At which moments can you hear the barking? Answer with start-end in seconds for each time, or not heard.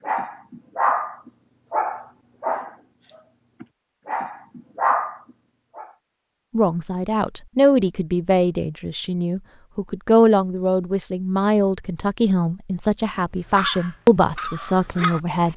0.1-6.0, 13.6-15.5.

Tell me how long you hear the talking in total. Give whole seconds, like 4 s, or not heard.
9 s.